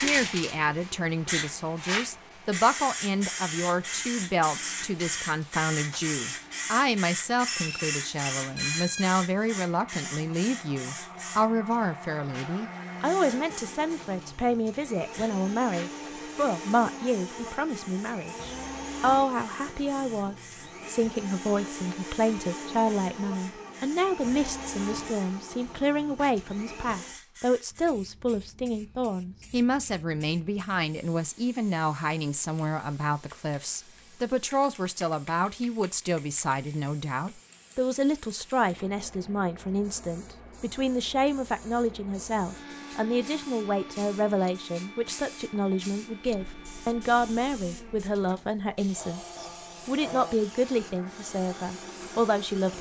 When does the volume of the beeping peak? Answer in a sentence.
The loudest moment of the beeping is at 9 seconds.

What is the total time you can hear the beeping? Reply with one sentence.
The beeping can be heard for 2 seconds in total.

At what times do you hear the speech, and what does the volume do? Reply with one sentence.
The speech can be heard from 0.0 to 52.7 s, at a steady volume.